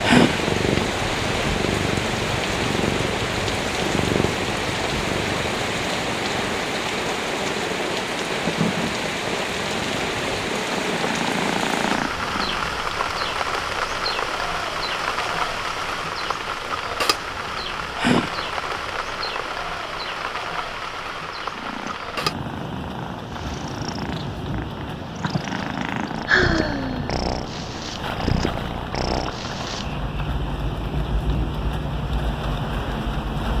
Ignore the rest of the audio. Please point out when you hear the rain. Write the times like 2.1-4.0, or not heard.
0.0-33.5.